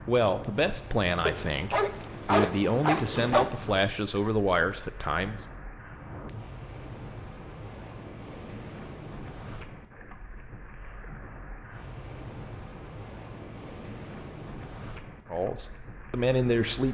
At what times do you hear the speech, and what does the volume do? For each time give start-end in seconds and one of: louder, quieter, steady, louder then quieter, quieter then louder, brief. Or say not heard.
0.1-5.4 quieter then louder
15.3-16.8 brief.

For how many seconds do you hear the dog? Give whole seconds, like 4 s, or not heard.
2 s.